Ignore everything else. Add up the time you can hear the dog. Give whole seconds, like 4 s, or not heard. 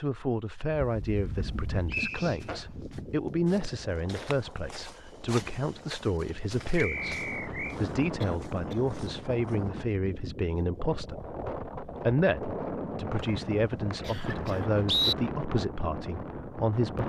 not heard.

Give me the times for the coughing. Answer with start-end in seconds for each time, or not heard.
1.4-3.0, 8.2-8.8, 14.0-14.7.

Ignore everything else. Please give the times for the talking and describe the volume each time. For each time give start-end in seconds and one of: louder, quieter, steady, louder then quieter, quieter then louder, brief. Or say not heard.
0.0-17.0 steady.